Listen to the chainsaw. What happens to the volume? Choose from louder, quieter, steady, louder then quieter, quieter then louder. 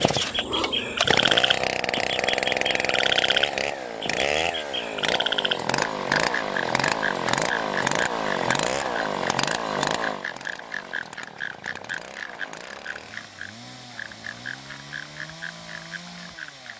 quieter.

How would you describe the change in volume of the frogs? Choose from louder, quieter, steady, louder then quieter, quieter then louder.
quieter.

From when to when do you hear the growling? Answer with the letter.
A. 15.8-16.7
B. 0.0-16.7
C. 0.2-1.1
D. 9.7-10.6
C.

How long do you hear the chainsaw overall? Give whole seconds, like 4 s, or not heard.
17 s.